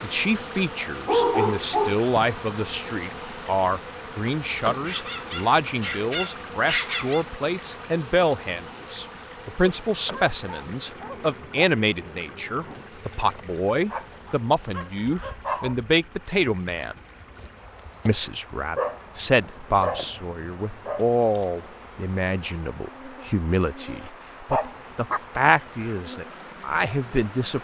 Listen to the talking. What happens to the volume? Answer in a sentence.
The volume of the talking stays about the same.